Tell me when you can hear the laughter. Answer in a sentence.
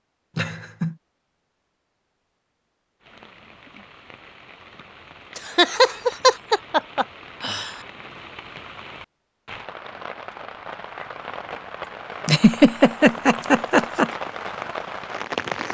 The laughter can be heard from 0.3 to 0.9 s, from 5.3 to 7.7 s and from 12.2 to 14.1 s.